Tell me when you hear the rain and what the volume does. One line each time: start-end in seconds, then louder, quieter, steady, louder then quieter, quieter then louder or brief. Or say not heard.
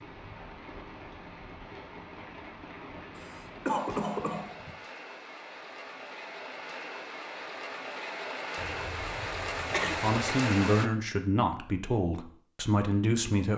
0.0-10.9 louder.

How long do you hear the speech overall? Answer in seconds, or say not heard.
4 s.